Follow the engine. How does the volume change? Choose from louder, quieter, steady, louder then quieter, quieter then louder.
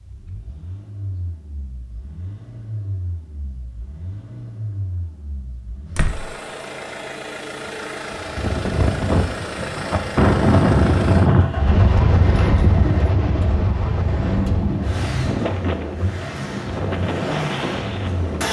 louder.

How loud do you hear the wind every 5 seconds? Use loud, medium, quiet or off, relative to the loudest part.
off, medium, loud, medium.